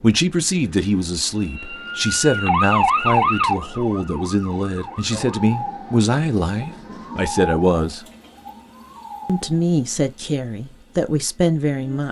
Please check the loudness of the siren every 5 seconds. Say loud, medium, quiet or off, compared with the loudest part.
loud, medium, off.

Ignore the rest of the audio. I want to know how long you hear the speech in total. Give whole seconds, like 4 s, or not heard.
11 s.